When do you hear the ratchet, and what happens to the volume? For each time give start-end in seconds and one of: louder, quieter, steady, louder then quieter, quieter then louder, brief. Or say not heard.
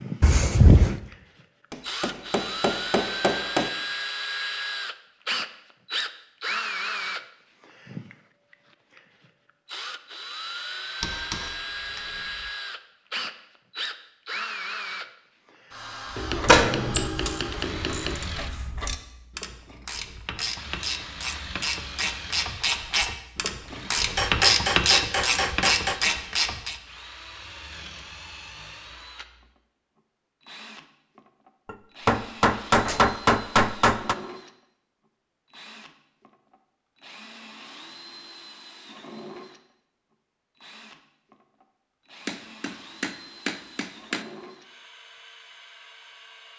16.1-26.8 louder.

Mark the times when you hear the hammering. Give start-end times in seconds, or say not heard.
1.7-3.7, 11.0-12.0, 16.1-18.1, 24.1-26.0, 31.6-34.1, 42.2-44.2.